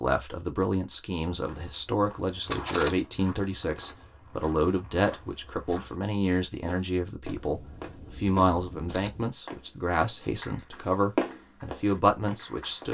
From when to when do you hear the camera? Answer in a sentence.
The camera can be heard from 2.5 to 3.1 s and from 7.3 to 9.2 s.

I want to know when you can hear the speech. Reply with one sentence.
You can hear the speech from 0.0 to 12.9 s.